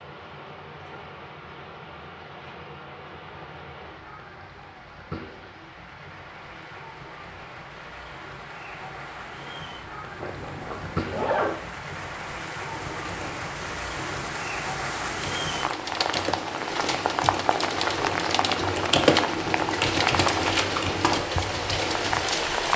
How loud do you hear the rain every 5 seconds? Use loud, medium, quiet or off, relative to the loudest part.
quiet, quiet, medium, loud, loud.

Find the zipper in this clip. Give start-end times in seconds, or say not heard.
10.2-11.6.